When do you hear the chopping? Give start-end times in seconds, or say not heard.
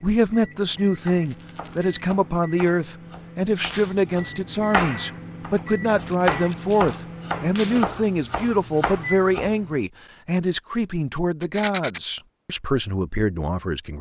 1.0-9.8.